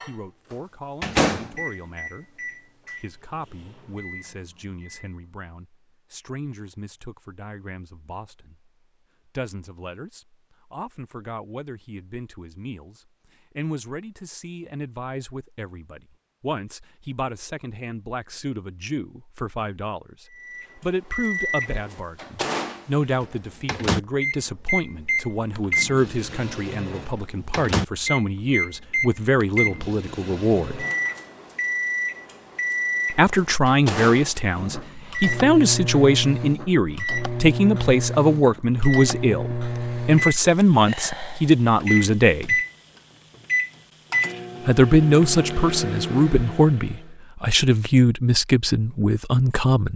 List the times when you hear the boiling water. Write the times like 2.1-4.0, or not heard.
not heard.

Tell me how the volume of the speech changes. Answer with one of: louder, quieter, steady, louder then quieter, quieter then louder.
louder.